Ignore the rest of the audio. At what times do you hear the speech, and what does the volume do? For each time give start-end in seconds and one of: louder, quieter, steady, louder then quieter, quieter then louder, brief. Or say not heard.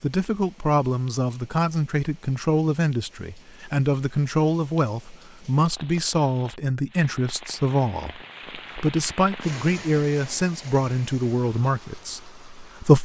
0.0-12.9 steady.